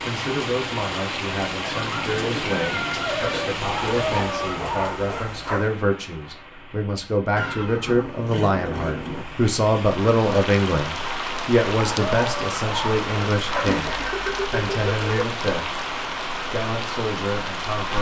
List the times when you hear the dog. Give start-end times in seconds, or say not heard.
3.6-5.8, 11.8-14.1.